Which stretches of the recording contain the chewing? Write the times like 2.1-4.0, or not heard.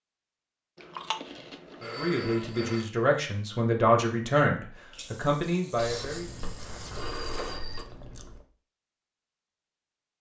0.8-2.8, 5.8-8.4.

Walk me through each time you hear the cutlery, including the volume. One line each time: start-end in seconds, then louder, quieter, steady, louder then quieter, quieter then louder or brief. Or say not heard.
not heard.